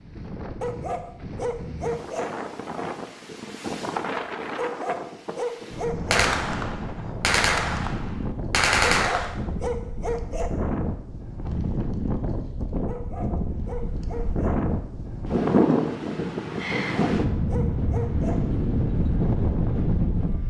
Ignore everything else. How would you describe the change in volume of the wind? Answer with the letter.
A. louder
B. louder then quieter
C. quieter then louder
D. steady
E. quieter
A.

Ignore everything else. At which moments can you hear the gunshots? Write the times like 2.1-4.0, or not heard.
6.1-9.3.